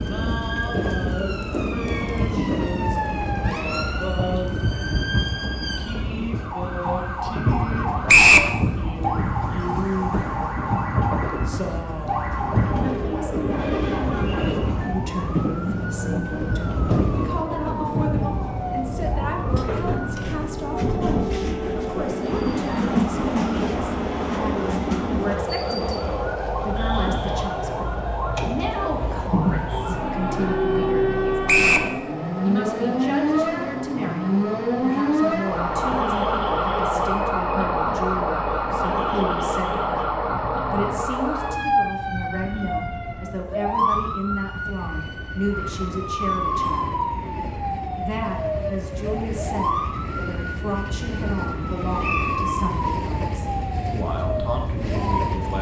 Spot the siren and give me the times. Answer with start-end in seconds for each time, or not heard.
0.0-55.5.